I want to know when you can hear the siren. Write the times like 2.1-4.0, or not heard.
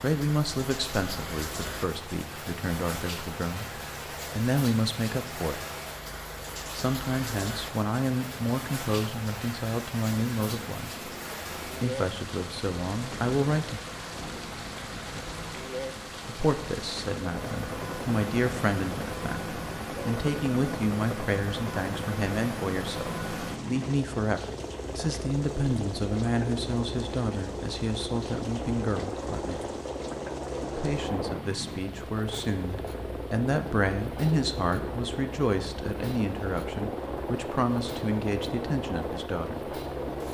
not heard.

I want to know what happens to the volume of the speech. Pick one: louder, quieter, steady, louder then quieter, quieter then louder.
steady.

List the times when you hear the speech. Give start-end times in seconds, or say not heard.
0.0-5.7, 6.7-13.8, 16.2-29.8, 30.8-39.7.